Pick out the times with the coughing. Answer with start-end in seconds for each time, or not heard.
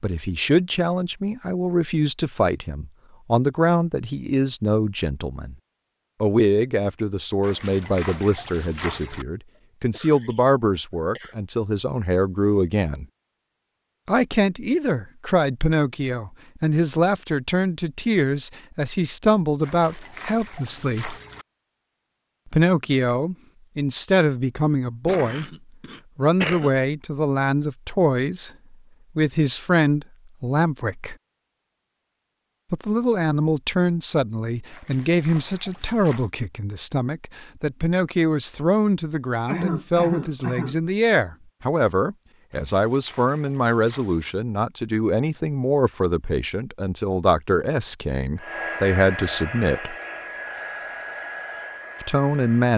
9.9-11.3, 24.9-26.7, 39.5-40.8.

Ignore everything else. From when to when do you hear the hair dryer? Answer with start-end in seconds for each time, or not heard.
48.4-52.7.